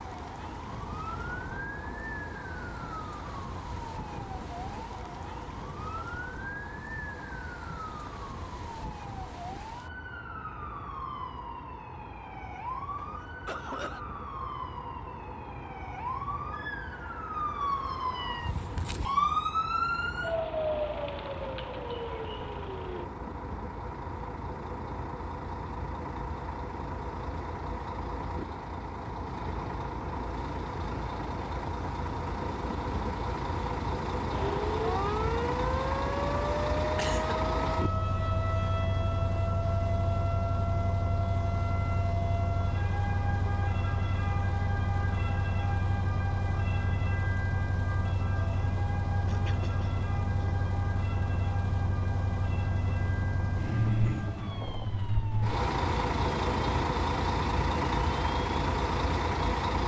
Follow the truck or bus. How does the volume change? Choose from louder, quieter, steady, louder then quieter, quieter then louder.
louder.